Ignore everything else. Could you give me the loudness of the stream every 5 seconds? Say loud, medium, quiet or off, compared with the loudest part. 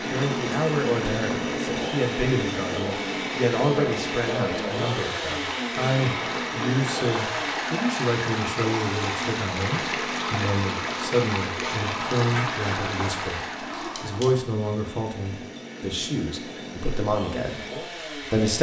medium, loud, loud, off.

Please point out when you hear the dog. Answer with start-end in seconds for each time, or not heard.
12.3-14.5.